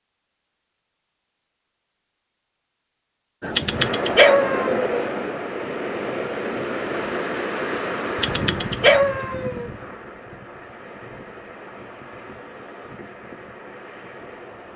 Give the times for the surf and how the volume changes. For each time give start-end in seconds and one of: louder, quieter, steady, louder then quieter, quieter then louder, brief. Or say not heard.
3.4-14.7 quieter.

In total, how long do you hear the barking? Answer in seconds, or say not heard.
3 s.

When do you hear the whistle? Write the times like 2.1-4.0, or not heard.
not heard.